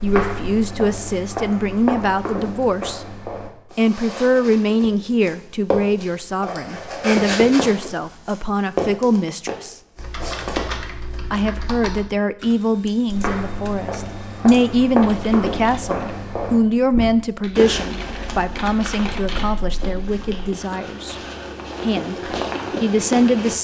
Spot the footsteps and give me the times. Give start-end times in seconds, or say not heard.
0.0-11.2, 13.1-23.6.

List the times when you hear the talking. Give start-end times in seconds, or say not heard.
0.0-3.1, 3.8-9.8, 11.3-21.1, 21.8-23.6.